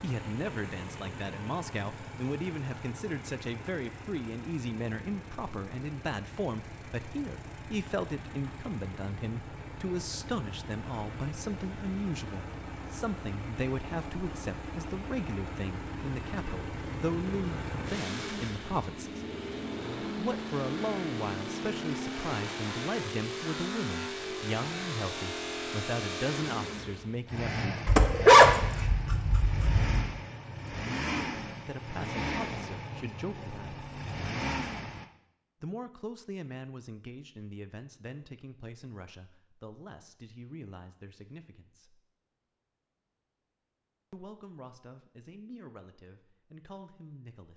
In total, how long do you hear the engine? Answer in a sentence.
The engine can be heard for 35 seconds in total.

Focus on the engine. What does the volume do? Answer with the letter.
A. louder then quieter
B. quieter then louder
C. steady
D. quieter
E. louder
E.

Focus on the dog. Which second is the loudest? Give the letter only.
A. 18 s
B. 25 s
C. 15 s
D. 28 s
D.